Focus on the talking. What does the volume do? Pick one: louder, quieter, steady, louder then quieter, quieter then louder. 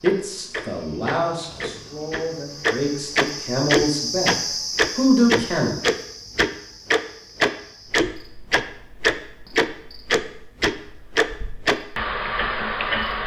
quieter then louder.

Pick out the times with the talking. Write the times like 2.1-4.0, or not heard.
0.0-5.8.